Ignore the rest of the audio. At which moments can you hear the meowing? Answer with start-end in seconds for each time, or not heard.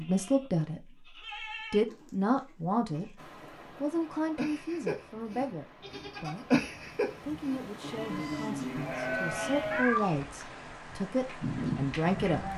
9.6-10.6.